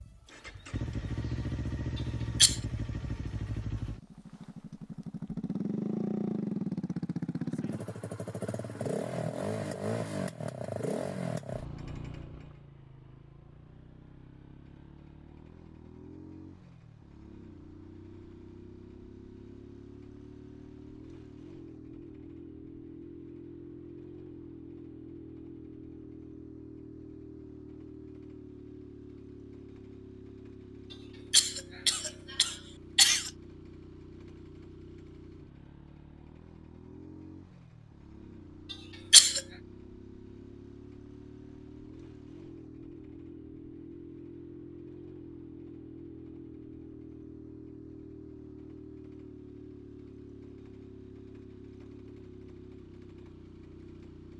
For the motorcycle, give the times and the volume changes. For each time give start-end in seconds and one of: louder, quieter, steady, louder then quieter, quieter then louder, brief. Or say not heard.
0.0-54.3 quieter.